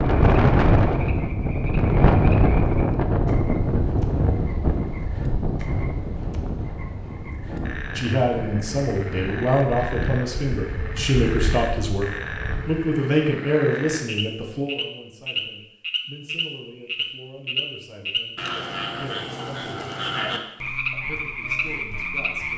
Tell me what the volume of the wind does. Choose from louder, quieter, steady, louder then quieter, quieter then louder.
quieter.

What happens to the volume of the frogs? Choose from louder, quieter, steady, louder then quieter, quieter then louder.
louder.